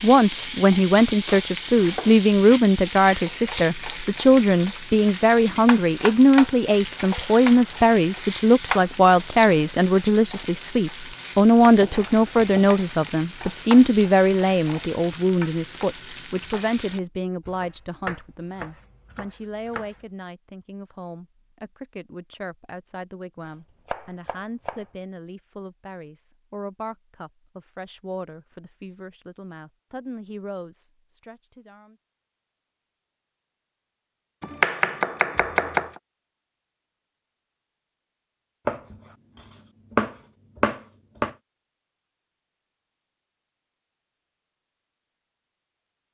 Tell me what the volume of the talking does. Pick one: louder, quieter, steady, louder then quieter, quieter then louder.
quieter.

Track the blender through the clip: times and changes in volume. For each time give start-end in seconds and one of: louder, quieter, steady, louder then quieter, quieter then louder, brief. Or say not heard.
not heard.